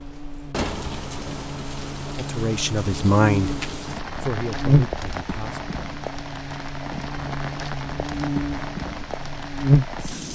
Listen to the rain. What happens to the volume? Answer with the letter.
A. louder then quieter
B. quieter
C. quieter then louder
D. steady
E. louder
D.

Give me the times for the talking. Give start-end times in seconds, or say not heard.
2.1-5.6.